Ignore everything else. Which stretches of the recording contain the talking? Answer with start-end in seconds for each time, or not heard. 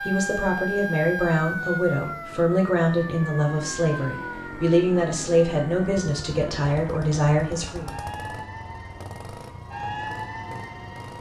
0.0-7.8.